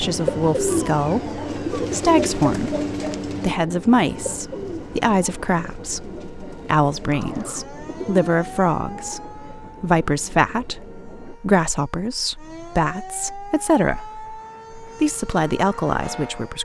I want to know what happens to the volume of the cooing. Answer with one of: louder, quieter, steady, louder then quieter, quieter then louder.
quieter.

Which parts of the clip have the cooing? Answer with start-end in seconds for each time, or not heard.
0.0-8.2.